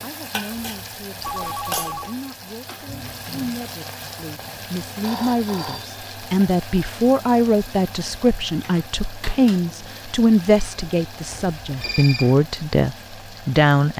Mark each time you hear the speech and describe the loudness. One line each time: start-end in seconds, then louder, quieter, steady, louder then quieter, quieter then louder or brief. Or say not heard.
0.0-13.9 louder.